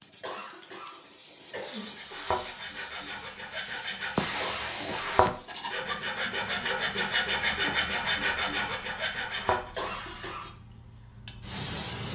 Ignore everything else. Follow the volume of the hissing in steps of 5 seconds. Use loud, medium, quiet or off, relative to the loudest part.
loud, medium, loud.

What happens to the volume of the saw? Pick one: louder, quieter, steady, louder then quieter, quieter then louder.
louder.